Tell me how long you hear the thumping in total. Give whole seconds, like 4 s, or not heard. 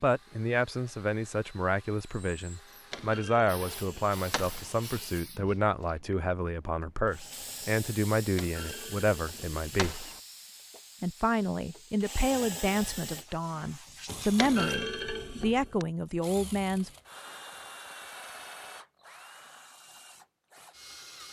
5 s.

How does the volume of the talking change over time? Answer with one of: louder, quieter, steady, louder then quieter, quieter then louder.
steady.